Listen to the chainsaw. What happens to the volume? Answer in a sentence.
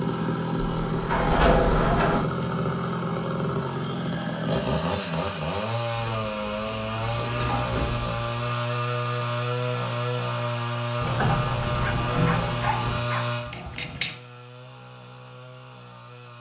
The loudness of the chainsaw goes down.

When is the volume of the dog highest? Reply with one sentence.
The volume of the dog peaks at 14 seconds.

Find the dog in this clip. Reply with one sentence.
You can hear the dog from 11.8 to 14.1 s.